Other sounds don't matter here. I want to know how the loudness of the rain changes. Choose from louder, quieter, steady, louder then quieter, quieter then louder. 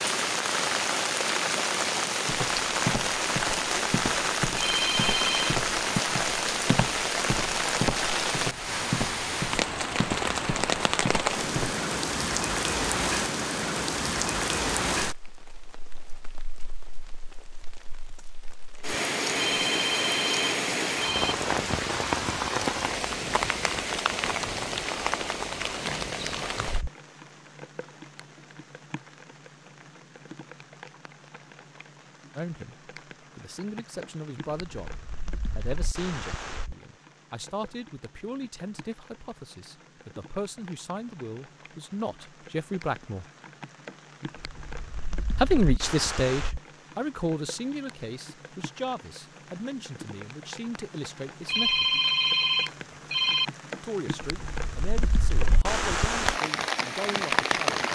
quieter then louder.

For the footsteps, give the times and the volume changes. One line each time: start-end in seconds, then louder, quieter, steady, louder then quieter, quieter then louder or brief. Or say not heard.
2.2-11.8 steady.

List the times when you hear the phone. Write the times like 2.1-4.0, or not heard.
4.5-5.5, 19.4-21.4, 51.5-53.5.